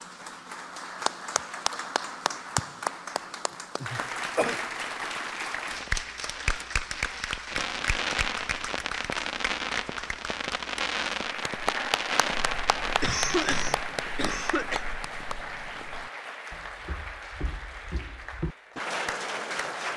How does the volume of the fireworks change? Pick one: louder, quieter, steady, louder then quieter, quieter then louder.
louder.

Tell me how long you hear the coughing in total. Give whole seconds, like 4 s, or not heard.
3 s.